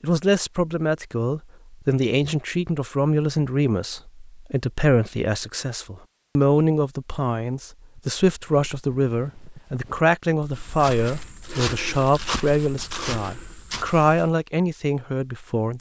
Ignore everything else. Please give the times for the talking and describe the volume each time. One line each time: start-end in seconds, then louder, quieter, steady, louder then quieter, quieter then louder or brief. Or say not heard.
0.0-15.7 steady.